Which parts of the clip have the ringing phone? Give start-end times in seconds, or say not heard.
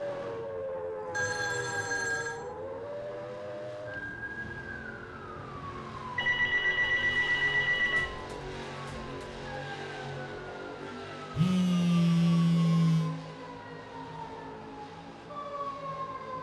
1.1-2.4, 6.2-8.1, 11.3-13.2.